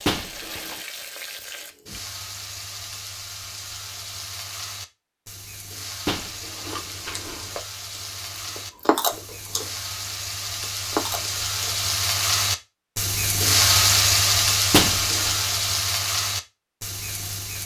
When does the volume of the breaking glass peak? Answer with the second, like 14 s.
15 s.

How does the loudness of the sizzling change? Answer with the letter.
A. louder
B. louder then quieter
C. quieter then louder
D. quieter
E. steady
A.